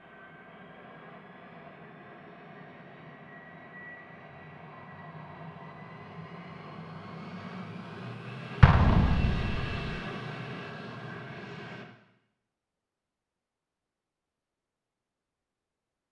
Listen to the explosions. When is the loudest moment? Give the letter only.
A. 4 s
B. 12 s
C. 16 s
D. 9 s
D.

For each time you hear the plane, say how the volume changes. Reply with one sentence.
You can hear the plane from 0.0 to 11.8 s, getting louder.